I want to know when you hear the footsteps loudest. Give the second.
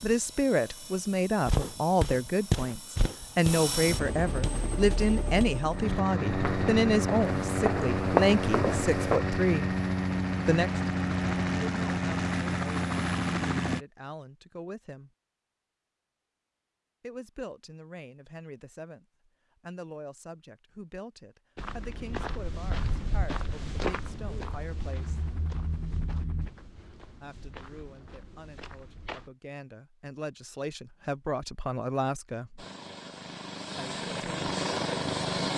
8 s.